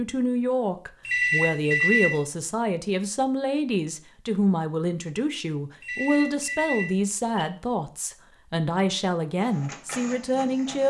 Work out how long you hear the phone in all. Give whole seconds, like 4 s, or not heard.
3 s.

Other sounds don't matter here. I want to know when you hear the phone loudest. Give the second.
2 s.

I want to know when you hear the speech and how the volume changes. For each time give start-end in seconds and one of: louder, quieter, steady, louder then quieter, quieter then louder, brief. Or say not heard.
0.0-10.8 steady.